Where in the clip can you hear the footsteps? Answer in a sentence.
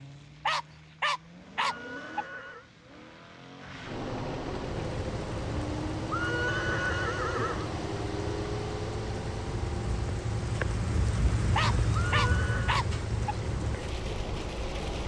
The footsteps can't be heard in this clip.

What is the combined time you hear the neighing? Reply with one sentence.
The neighing can be heard for 4 seconds in total.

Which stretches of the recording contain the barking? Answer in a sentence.
The barking can be heard from 0.5 to 2.2 s and from 11.6 to 13.3 s.